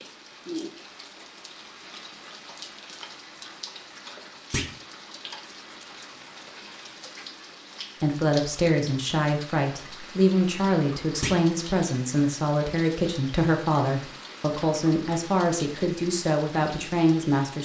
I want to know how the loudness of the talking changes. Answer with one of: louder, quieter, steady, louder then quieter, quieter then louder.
steady.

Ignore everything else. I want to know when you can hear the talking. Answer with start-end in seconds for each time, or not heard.
8.0-17.6.